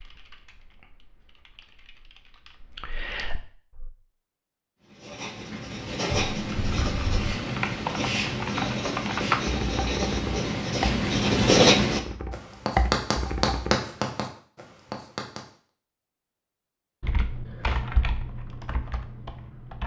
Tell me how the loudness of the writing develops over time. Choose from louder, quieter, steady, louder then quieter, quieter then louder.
louder then quieter.